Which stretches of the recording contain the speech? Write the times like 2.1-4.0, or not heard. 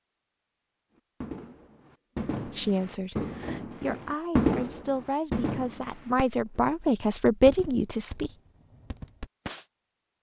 2.5-8.3.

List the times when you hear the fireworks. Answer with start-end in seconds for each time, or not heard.
1.2-6.6, 7.5-9.7.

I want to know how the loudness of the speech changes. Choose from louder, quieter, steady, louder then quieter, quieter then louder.
louder.